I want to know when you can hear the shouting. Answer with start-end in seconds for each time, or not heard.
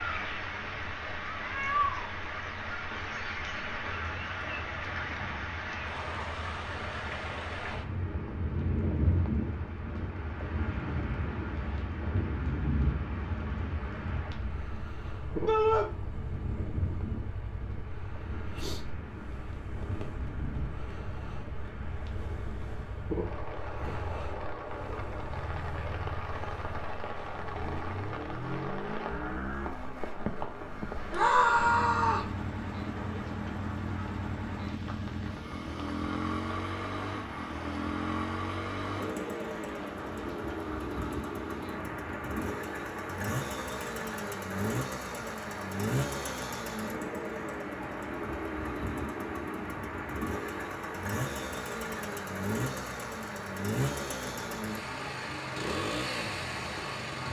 15.4-15.8, 31.1-32.3.